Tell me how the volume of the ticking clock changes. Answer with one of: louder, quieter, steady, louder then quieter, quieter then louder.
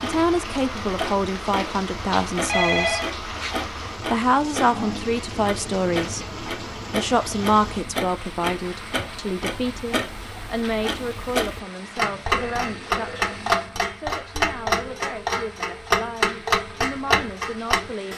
louder.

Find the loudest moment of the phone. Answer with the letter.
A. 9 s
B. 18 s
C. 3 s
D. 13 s
C.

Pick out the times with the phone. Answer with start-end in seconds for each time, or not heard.
2.4-3.1, 12.3-13.6.